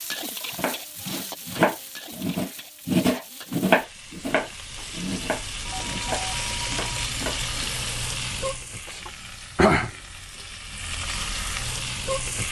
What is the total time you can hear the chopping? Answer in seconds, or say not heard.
7 s.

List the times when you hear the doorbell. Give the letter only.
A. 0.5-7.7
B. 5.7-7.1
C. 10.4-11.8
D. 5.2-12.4
B.